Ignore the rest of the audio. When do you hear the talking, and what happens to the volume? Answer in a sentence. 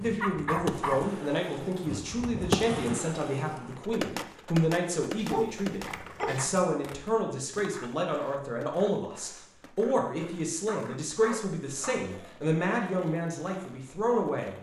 The talking can be heard from 0.0 to 14.5 s, at a steady volume.